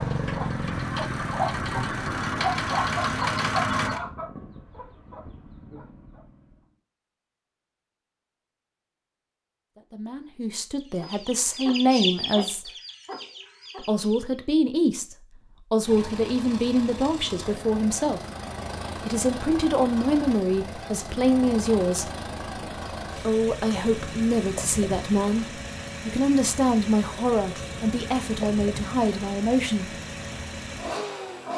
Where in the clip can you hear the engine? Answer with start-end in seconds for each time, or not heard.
0.0-4.0, 15.8-31.5.